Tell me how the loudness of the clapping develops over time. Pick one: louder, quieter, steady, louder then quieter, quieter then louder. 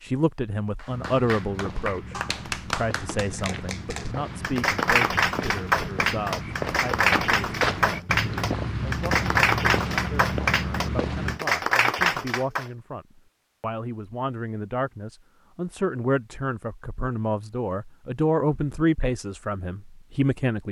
louder.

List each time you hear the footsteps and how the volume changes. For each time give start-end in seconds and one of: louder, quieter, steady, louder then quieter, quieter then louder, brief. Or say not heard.
0.8-11.4 louder.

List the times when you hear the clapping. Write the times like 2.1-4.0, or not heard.
0.8-12.7.